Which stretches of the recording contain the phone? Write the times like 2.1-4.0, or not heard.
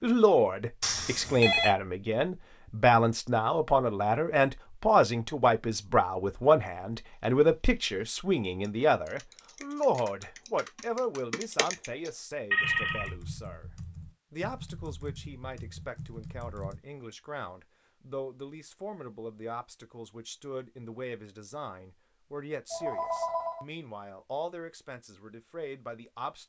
0.8-1.8, 12.5-13.2, 22.7-23.6.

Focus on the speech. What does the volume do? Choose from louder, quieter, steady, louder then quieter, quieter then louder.
quieter.